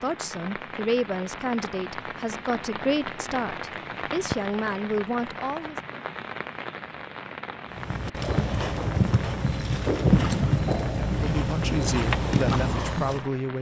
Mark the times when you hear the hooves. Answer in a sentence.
You can hear the hooves from 7.7 to 13.3 s.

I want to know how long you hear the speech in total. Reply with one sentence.
The speech can be heard for 8 seconds in total.